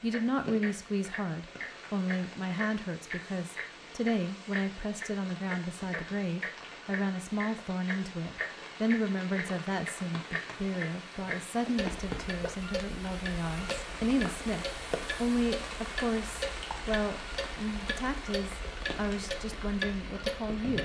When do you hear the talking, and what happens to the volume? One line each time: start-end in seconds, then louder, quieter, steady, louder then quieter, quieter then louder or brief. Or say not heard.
0.0-20.7 steady.